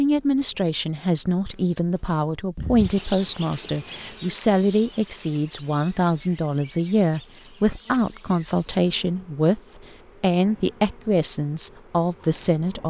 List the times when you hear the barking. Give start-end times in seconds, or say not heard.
not heard.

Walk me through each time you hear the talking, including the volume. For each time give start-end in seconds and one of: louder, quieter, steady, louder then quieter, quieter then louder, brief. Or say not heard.
0.0-12.8 steady.